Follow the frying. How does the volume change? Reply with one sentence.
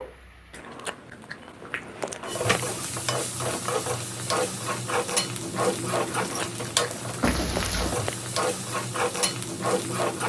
The volume of the frying goes up.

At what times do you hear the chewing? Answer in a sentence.
You can hear the chewing from 0.5 to 2.9 s and from 6.0 to 8.3 s.